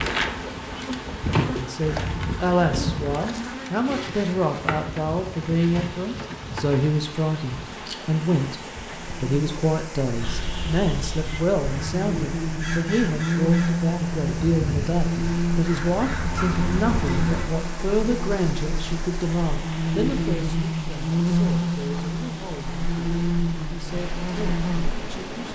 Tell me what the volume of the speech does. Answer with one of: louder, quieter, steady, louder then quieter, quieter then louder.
quieter.